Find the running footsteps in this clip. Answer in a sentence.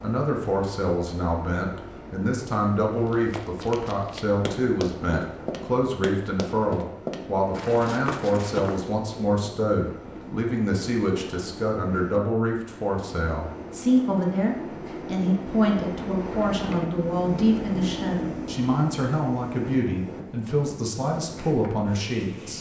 You can hear the running footsteps from 3.0 to 8.9 s.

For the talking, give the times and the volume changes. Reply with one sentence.
The talking can be heard from 0.0 to 22.5 s, at a steady volume.